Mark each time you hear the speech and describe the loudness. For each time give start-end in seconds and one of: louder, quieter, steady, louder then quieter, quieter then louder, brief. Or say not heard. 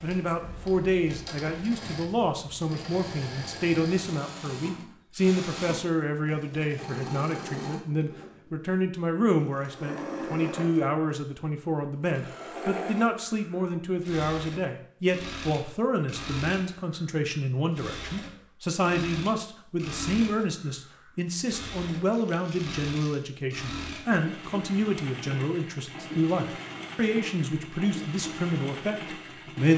0.0-29.7 steady.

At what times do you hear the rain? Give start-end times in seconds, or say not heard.
not heard.